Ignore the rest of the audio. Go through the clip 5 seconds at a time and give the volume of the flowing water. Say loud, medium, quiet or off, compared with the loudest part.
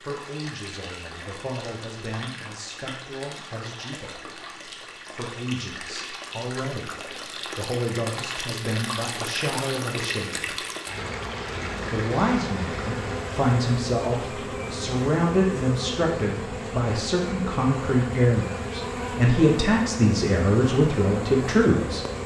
medium, loud, loud, off, off.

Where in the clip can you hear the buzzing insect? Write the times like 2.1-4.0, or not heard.
10.9-22.2.